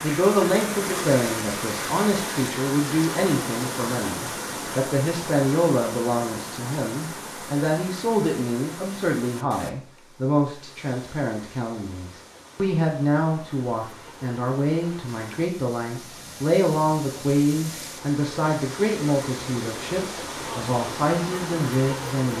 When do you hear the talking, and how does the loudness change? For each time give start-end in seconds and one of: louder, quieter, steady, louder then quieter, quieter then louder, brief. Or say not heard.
0.0-22.3 steady.